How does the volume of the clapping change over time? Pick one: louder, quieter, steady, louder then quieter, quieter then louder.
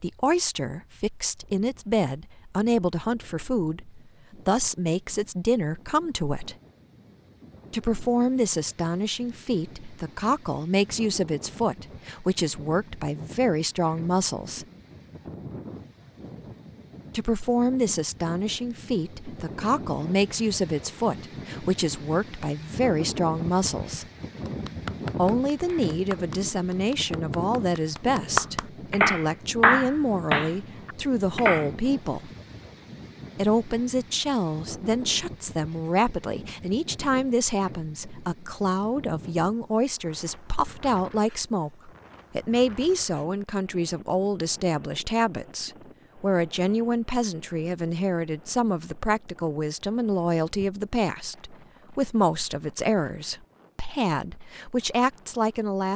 quieter then louder.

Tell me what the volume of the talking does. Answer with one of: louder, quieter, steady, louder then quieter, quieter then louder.
steady.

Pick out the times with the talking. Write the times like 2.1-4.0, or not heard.
0.0-6.5, 7.7-14.7, 17.1-24.1, 25.1-32.3, 33.4-55.9.